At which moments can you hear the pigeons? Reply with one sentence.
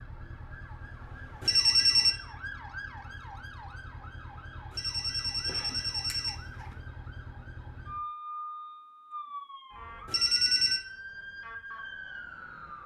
You can't hear the pigeons here.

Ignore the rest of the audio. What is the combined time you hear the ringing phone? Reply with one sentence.
You can hear the ringing phone for 3 seconds altogether.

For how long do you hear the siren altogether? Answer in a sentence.
The siren can be heard for 13 seconds in total.